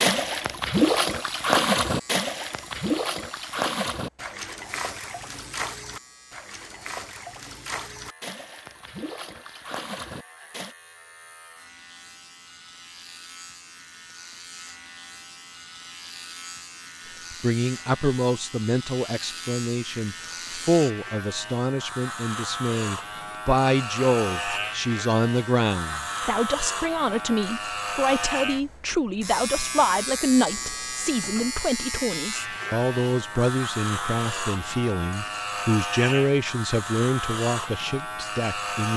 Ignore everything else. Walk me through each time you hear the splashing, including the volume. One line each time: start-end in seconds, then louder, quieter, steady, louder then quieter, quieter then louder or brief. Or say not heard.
0.0-10.8 quieter.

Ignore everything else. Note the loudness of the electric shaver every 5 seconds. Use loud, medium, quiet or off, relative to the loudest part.
quiet, quiet, quiet, medium, loud, loud, loud, loud.